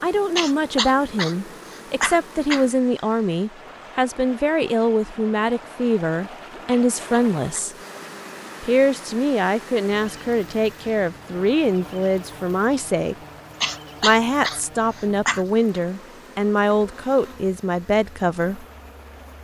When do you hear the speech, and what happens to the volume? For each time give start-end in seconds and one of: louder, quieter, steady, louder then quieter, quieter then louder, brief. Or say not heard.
0.0-7.8 steady
8.6-13.2 steady
14.0-18.6 steady.